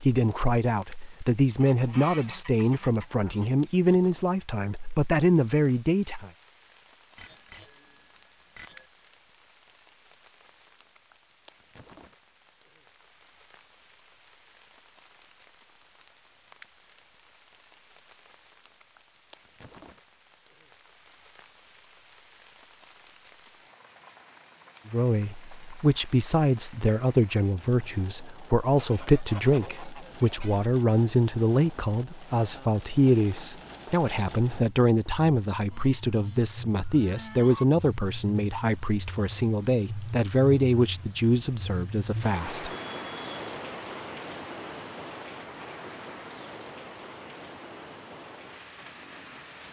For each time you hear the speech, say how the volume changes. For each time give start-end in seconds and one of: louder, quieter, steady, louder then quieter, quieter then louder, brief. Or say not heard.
0.0-6.3 steady
24.9-42.7 steady.